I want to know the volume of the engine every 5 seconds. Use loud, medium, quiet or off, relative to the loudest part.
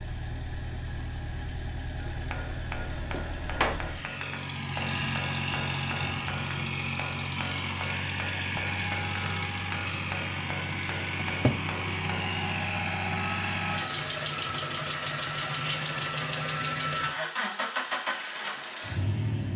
medium, loud, loud, loud.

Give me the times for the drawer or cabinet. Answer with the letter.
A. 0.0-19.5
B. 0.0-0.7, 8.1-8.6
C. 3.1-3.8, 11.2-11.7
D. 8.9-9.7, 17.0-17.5
C.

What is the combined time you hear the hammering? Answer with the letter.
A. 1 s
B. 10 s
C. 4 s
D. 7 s
B.